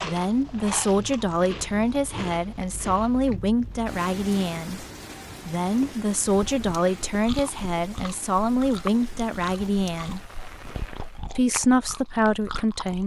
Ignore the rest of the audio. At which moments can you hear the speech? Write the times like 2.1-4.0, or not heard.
0.0-4.8, 5.5-10.2, 11.3-13.0.